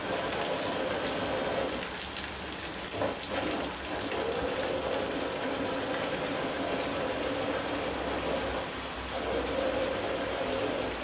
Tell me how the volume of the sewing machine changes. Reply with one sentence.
The loudness of the sewing machine stays about the same.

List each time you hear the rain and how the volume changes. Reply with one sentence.
You can hear the rain from 0.0 to 10.9 s, at a steady volume.